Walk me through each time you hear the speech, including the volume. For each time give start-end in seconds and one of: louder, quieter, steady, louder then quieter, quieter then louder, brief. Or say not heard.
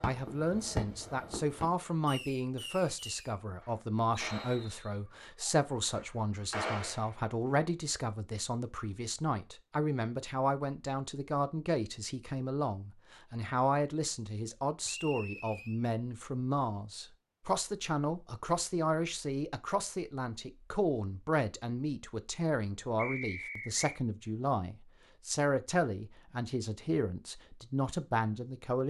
0.0-28.8 steady.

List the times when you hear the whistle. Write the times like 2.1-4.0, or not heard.
4.2-4.8, 14.8-15.8, 22.9-24.0.